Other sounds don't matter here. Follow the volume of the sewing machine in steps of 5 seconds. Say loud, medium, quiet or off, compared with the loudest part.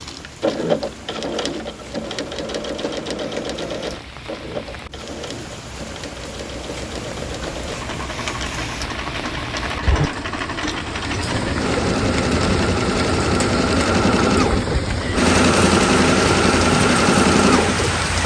medium, quiet, medium, loud.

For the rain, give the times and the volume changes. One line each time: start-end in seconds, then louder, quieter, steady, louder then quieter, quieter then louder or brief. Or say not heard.
0.0-18.2 louder.